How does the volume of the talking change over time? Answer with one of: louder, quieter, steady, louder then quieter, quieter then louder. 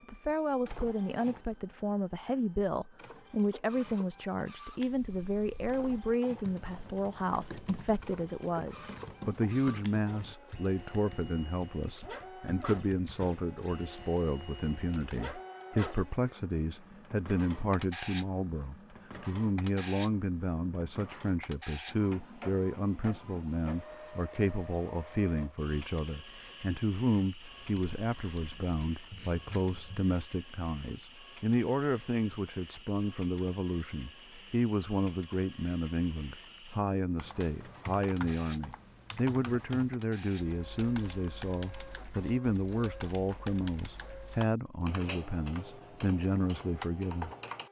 steady.